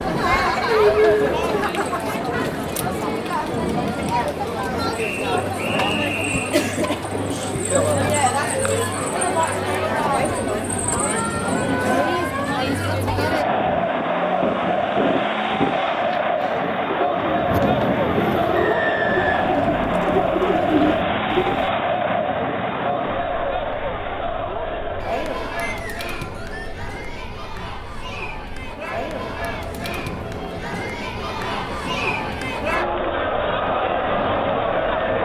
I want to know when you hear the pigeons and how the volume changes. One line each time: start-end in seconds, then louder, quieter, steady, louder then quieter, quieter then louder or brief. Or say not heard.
16.6-21.7 louder.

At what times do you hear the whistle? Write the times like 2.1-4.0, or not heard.
5.0-6.5, 18.5-19.6, 25.6-26.7.